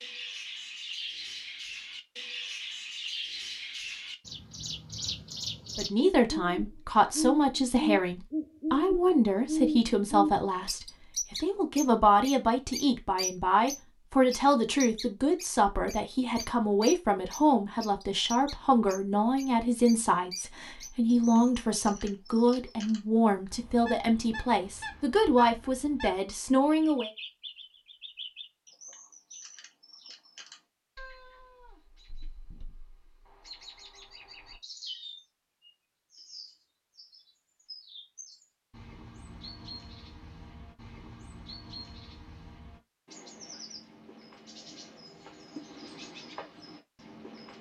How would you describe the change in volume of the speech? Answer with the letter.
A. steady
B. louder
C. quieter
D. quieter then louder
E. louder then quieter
A.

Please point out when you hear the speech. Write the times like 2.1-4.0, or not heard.
5.8-27.1.